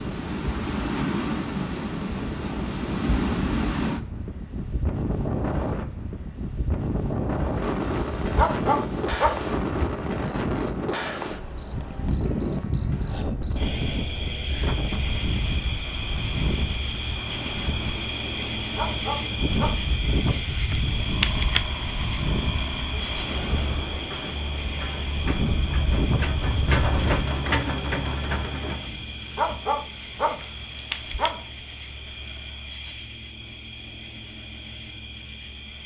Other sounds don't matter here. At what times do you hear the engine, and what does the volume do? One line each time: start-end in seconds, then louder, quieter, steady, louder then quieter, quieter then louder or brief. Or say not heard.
21.1-28.9 louder.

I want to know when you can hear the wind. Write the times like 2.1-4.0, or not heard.
0.0-27.2.